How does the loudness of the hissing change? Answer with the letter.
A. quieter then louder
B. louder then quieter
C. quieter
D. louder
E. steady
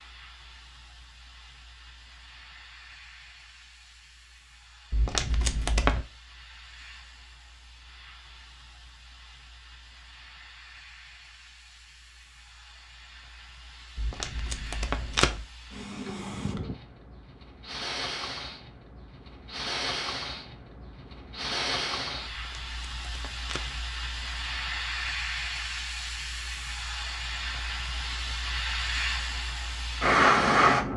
D.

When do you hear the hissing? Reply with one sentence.
You can hear the hissing from 0.0 to 30.9 s.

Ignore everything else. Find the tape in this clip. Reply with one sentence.
You can hear the tape from 4.9 to 6.0 s, from 13.9 to 15.4 s and from 22.3 to 23.9 s.